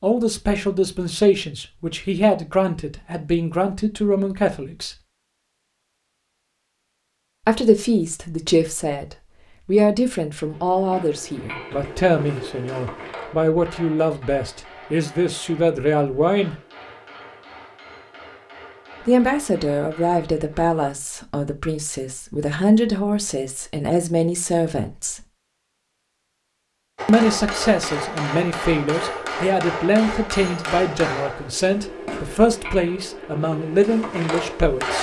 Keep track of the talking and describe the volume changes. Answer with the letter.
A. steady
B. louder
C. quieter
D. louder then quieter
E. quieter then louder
A.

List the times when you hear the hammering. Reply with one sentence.
The hammering can be heard from 10.4 to 20.9 s and from 26.9 to 34.9 s.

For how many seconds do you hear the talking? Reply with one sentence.
The talking can be heard for 28 seconds in total.